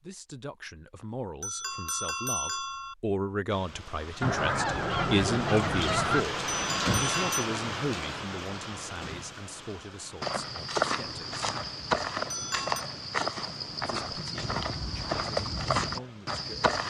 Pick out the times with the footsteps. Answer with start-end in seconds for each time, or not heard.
10.2-16.8.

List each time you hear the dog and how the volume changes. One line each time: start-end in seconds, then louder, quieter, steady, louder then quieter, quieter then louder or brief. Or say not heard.
not heard.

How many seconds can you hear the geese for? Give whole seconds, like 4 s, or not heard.
2 s.